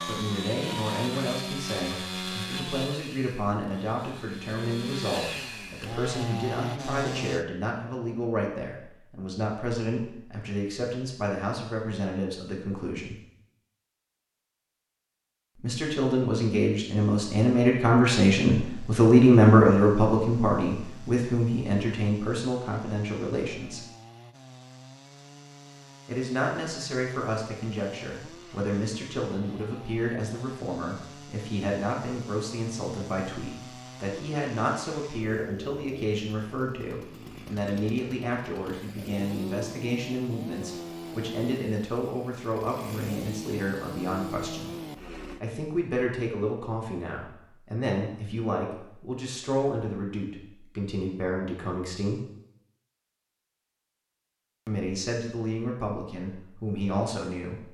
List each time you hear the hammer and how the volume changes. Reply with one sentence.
The hammer can't be heard in this clip.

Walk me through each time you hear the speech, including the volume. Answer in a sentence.
The speech can be heard from 0.1 to 13.2 s, at a steady volume; from 15.6 to 23.9 s, getting louder then quieter; from 26.1 to 44.8 s, at a steady volume; from 45.4 to 52.2 s, at a steady volume; and briefly from 54.6 to 57.6 s.